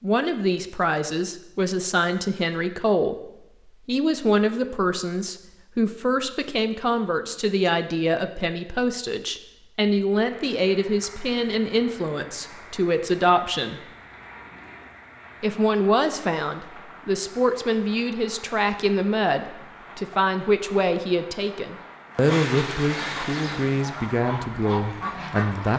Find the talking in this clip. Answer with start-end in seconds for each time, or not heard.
0.0-3.1, 3.9-13.8, 15.4-25.7.